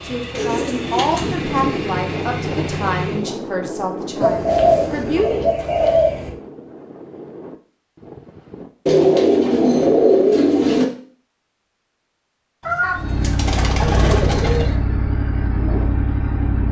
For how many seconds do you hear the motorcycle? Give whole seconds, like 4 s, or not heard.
7 s.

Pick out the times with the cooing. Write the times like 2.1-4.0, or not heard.
0.3-1.9, 4.2-6.3, 8.8-10.8, 12.7-14.8.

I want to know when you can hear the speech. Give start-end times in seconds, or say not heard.
0.0-5.5.